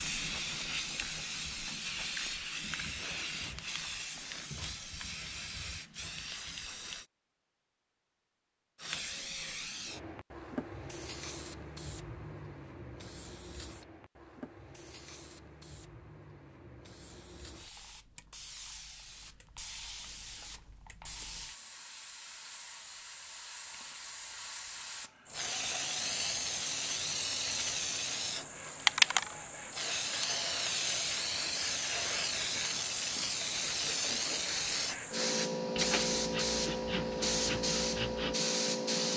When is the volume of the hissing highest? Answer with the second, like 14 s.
29 s.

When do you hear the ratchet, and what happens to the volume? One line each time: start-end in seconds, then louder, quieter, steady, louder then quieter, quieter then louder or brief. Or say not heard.
not heard.